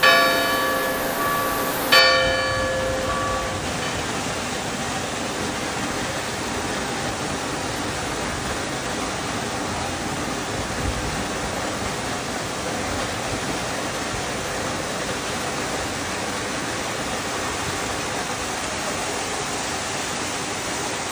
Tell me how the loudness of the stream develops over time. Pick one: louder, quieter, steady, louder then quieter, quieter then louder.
steady.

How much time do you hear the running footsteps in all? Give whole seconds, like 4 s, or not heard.
not heard.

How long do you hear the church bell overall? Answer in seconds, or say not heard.
4 s.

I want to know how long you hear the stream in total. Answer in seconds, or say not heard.
21 s.